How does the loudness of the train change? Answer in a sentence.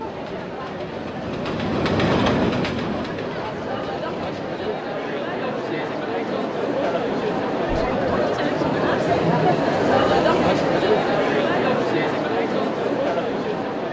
The loudness of the train goes up, then down.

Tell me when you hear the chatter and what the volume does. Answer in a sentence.
The chatter can be heard from 0.0 to 13.8 s, getting louder.